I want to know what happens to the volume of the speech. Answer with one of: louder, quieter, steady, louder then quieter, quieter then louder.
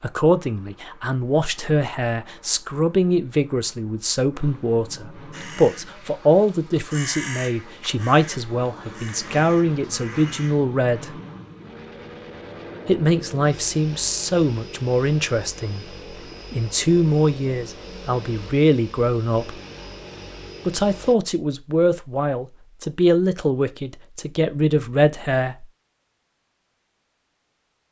steady.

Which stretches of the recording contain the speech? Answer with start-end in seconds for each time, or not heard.
0.0-11.2, 12.8-15.8, 16.5-19.6, 20.6-25.6.